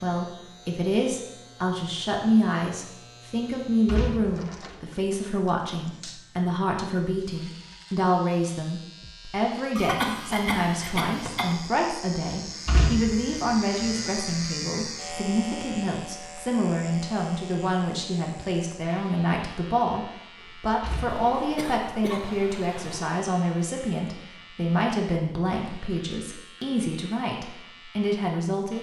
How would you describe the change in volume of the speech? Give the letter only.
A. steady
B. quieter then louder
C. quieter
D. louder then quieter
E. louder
A.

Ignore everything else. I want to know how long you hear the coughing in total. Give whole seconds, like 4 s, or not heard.
4 s.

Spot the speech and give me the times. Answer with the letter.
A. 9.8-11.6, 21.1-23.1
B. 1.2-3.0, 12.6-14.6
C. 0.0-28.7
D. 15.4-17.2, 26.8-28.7
C.